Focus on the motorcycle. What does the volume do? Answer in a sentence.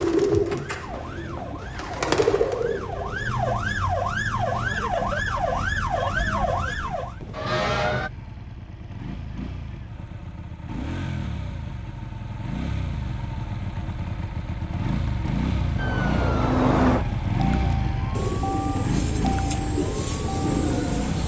The volume of the motorcycle goes up.